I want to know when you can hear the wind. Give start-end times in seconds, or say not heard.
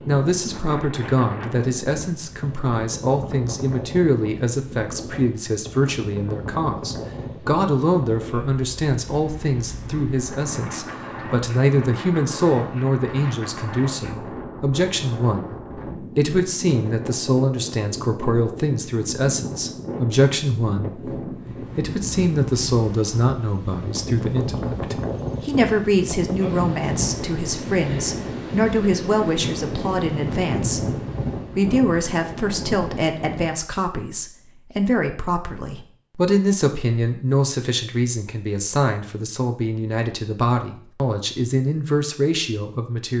0.0-33.5.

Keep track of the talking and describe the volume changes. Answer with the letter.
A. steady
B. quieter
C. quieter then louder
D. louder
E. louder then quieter
A.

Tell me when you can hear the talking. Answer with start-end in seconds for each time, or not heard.
0.1-30.9, 31.6-43.1.